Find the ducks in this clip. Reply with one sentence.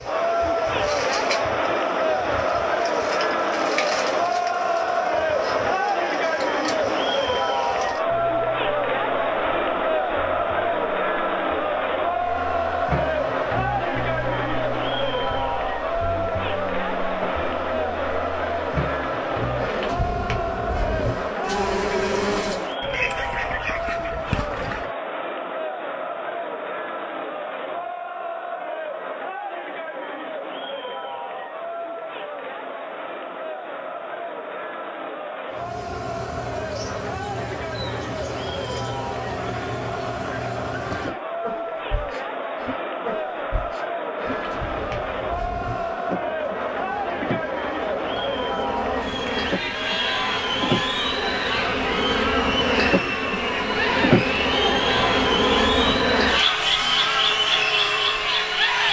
The ducks can be heard from 22.8 to 24.9 s.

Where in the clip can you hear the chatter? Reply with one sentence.
You can hear the chatter from 0.0 to 58.8 s.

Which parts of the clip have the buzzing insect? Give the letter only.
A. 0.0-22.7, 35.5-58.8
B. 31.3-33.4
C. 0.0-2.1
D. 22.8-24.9
A.